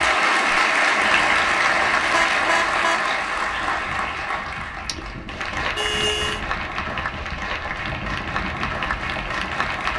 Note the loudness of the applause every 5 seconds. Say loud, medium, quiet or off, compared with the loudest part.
loud, medium.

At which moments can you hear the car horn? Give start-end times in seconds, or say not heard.
2.1-3.0, 5.8-6.5.